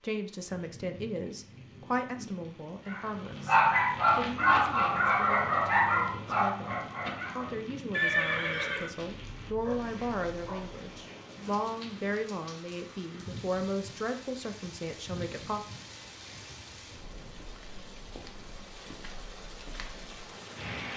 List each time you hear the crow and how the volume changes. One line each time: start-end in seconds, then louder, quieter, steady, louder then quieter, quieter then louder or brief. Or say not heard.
not heard.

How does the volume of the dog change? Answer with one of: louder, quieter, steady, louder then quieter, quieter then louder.
quieter.